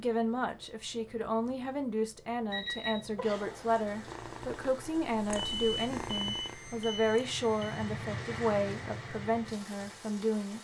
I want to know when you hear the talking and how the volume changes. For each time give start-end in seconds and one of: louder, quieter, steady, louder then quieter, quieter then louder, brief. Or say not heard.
0.0-10.5 steady.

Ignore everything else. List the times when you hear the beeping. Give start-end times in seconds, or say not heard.
2.5-3.1, 5.3-7.9.